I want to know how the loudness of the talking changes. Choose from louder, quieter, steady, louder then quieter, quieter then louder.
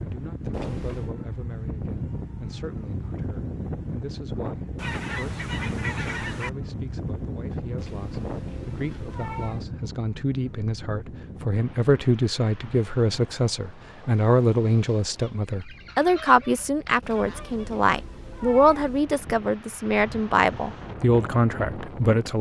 louder.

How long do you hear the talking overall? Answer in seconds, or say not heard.
22 s.